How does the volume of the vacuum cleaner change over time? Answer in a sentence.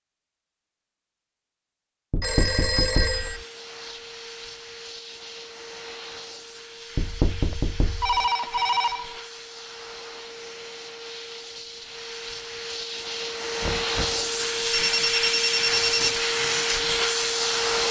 The volume of the vacuum cleaner goes up.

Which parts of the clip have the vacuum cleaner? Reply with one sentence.
You can hear the vacuum cleaner from 3.0 to 17.8 s.